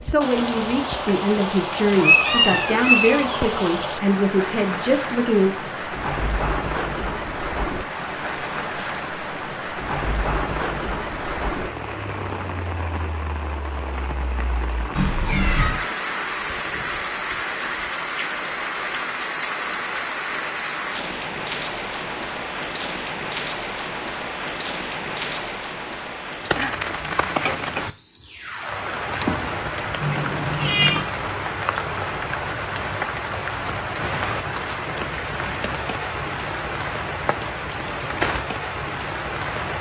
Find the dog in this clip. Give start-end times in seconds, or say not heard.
not heard.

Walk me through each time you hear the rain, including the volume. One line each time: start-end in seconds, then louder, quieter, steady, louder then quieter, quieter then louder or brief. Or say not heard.
0.0-39.7 steady.